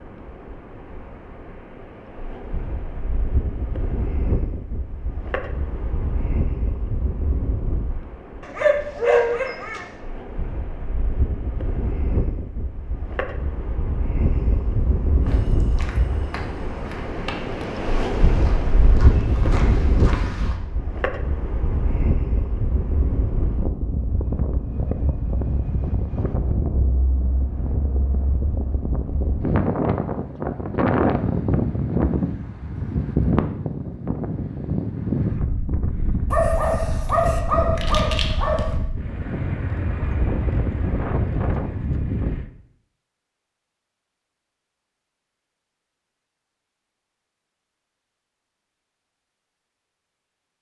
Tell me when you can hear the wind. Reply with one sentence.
The wind can be heard from 0.0 to 42.5 s.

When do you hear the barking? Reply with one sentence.
You can hear the barking from 8.4 to 9.8 s and from 36.3 to 38.8 s.